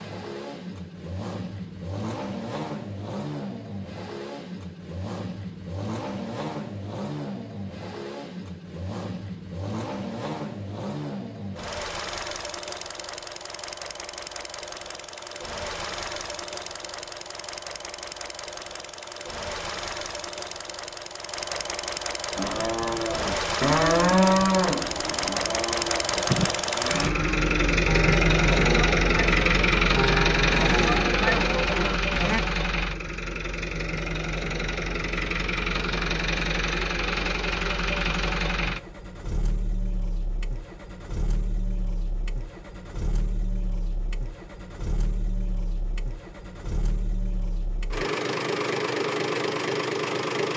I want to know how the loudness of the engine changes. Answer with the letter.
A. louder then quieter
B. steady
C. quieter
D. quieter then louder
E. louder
A.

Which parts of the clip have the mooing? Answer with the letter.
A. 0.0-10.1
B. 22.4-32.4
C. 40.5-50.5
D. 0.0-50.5
B.